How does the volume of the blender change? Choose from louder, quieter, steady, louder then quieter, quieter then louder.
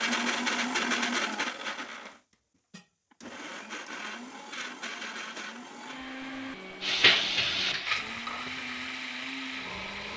quieter.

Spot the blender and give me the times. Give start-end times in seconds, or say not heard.
0.0-10.1.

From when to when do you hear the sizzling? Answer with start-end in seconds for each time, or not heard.
6.8-10.1.